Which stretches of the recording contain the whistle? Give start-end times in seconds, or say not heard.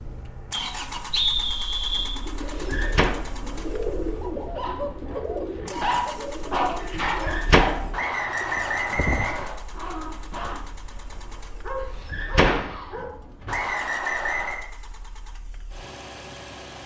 0.5-2.2, 7.9-9.6, 13.4-14.7.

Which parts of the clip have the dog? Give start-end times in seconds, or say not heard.
4.5-13.1.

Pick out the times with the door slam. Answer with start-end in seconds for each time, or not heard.
2.4-3.1, 7.2-7.7, 12.1-13.6.